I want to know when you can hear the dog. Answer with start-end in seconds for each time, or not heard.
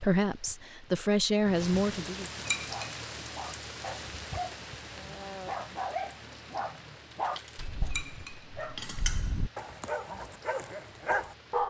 2.6-11.6.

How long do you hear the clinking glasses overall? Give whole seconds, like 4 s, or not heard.
3 s.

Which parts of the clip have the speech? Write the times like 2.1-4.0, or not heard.
0.0-2.3.